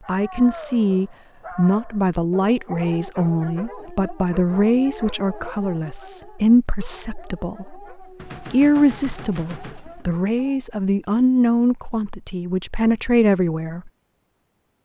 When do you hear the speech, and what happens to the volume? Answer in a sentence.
You can hear the speech from 0.1 to 13.9 s, at a steady volume.